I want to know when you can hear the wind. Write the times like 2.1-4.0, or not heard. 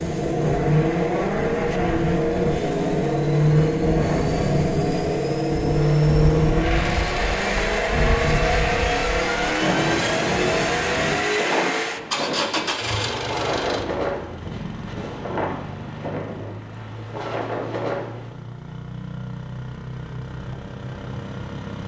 0.0-18.4.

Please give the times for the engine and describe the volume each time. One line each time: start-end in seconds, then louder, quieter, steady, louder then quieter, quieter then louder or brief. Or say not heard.
0.0-21.8 quieter.